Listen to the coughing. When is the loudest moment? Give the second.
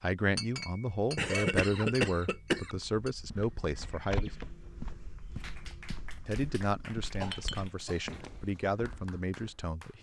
2 s.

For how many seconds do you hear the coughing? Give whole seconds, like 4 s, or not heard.
3 s.